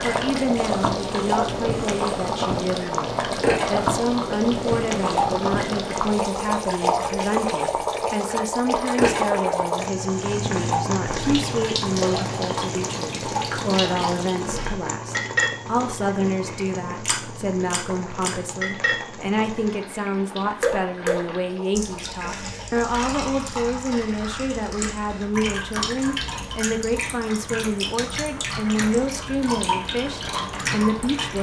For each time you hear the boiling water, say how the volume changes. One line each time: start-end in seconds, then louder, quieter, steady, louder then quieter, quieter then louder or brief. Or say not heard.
0.0-31.3 quieter.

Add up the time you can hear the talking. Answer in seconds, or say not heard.
31 s.